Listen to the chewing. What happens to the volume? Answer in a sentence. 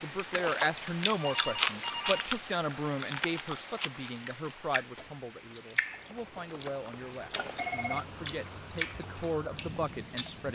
The volume of the chewing goes down, then up.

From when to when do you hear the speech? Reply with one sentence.
The speech can be heard from 0.0 to 10.4 s.